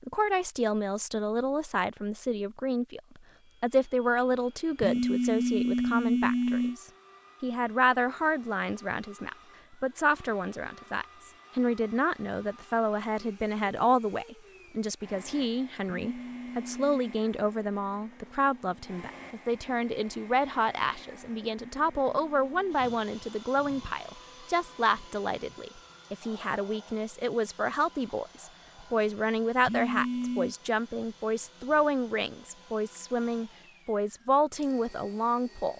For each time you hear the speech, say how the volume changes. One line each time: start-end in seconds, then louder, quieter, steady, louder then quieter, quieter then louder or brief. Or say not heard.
0.0-35.7 steady.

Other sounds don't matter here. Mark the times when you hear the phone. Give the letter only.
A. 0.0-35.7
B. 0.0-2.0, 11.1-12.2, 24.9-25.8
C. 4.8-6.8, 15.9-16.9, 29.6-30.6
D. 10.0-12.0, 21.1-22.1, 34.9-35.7
C.